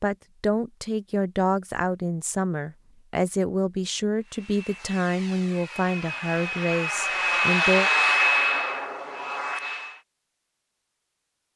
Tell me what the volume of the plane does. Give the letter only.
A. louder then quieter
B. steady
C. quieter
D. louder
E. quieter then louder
A.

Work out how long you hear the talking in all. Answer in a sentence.
The talking can be heard for 8 seconds in total.